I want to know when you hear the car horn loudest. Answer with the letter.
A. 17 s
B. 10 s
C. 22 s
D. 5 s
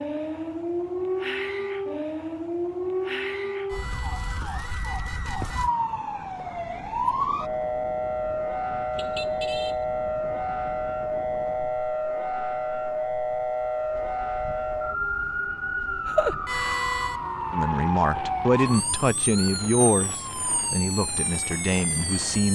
A.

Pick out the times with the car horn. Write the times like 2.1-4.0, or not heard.
3.6-5.7, 8.9-9.8, 16.4-17.2.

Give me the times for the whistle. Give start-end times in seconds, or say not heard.
not heard.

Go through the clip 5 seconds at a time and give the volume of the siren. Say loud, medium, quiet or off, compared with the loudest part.
loud, loud, loud, loud, medium.